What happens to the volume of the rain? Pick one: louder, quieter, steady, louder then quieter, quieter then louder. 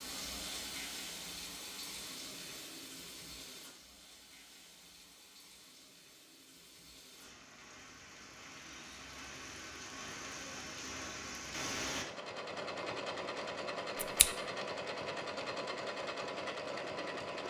quieter then louder.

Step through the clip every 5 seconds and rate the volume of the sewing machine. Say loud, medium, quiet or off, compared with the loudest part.
off, off, loud, loud.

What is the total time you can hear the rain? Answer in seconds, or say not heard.
12 s.